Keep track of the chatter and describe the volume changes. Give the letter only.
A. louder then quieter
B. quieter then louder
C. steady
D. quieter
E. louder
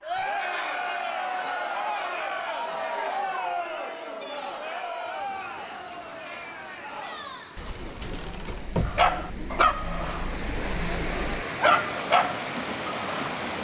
D.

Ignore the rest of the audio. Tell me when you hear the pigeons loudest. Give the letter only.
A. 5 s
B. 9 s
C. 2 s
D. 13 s
B.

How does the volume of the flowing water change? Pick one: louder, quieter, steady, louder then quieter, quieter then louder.
louder.